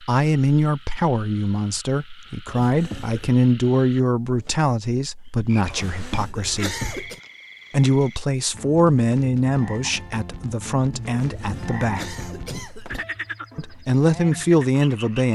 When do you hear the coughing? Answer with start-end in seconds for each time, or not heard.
2.5-3.4, 5.7-7.2, 11.2-13.1.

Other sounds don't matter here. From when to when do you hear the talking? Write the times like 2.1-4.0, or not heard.
0.0-6.8, 7.7-12.1, 13.6-15.2.